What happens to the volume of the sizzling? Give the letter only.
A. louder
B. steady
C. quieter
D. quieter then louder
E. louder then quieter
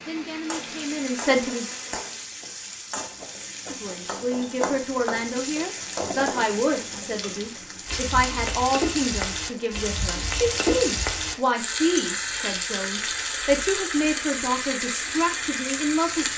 A.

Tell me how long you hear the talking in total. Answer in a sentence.
The talking can be heard for 14 seconds in total.